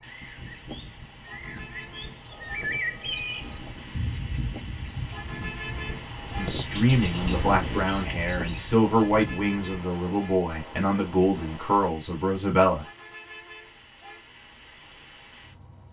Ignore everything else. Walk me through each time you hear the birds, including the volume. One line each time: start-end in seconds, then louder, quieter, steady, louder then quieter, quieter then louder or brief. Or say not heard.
0.1-6.0 louder then quieter
6.6-8.7 brief.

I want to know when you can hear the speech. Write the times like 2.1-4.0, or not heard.
6.3-12.8.